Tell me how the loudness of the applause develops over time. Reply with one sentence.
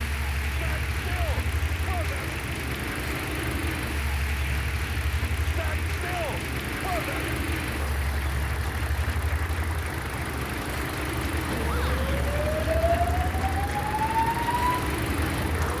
The loudness of the applause stays about the same.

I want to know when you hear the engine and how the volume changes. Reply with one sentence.
The engine can be heard from 0.0 to 15.7 s, at a steady volume.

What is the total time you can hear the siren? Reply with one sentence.
You can hear the siren for 4 seconds altogether.